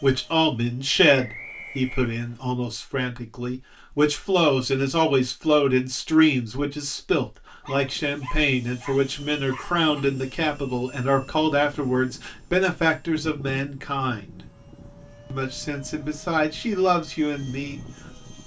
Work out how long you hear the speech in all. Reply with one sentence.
You can hear the speech for 17 seconds altogether.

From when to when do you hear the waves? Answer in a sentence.
You can't hear the waves here.